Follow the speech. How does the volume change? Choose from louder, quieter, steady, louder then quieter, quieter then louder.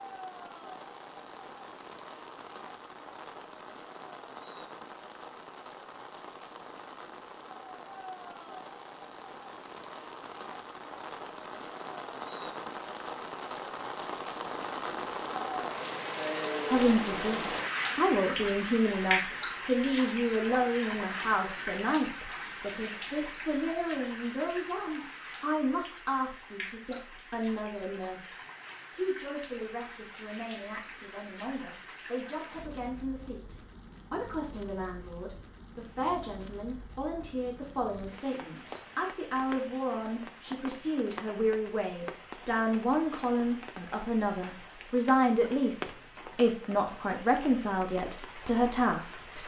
quieter then louder.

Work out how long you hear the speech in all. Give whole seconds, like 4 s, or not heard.
33 s.